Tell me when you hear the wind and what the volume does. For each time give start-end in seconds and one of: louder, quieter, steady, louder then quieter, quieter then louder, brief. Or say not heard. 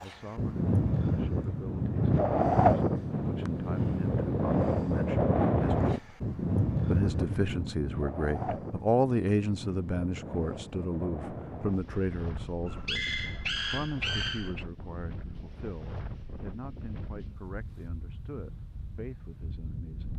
0.0-20.1 quieter.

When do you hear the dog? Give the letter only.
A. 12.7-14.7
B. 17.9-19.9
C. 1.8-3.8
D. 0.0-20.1
A.